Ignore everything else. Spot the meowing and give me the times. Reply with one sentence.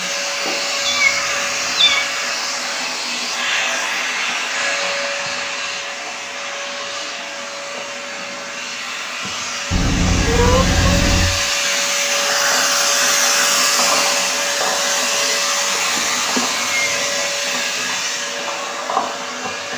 The meowing can be heard from 0.8 to 2.0 s, from 9.7 to 11.2 s and from 15.8 to 17.4 s.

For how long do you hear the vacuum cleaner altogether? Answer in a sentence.
The vacuum cleaner can be heard for 20 seconds in total.